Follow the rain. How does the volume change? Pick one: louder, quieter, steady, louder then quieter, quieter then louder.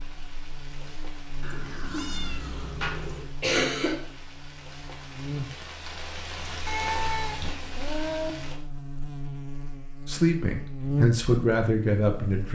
louder.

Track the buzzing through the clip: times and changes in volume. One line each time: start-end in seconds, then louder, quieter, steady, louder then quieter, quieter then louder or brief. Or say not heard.
0.0-12.5 louder.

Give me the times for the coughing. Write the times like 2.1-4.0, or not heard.
2.8-4.0.